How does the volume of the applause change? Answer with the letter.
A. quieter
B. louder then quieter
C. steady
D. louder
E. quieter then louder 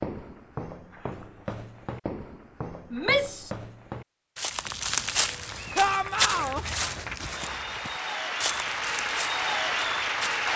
D.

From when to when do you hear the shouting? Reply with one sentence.
You can hear the shouting from 2.9 to 3.5 s and from 5.8 to 6.7 s.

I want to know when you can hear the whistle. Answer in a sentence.
The whistle can't be heard in this clip.